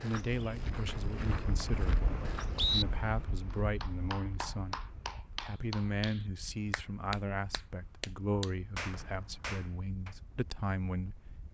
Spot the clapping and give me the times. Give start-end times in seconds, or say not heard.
3.5-10.2.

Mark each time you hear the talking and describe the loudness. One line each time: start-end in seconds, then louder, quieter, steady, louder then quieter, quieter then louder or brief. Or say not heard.
0.0-11.4 steady.